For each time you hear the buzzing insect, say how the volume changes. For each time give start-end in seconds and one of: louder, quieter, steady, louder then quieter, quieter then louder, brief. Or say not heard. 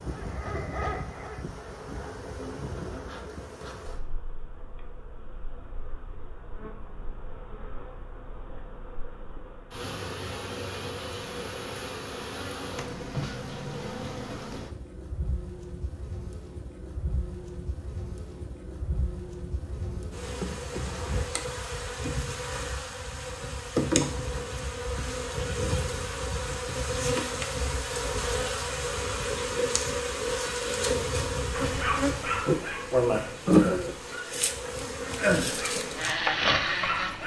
0.0-37.2 louder.